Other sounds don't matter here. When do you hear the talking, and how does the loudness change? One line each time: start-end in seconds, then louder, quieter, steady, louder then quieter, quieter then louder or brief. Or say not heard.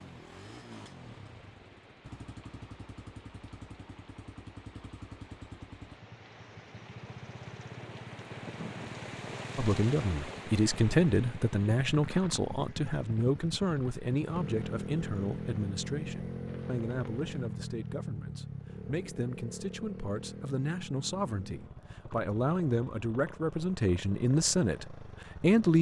9.6-25.7 quieter then louder.